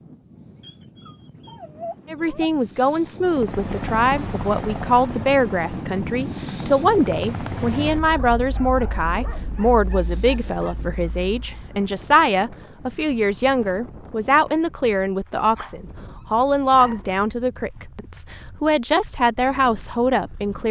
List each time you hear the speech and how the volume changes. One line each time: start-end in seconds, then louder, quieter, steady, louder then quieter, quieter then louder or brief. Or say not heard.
2.1-20.6 steady.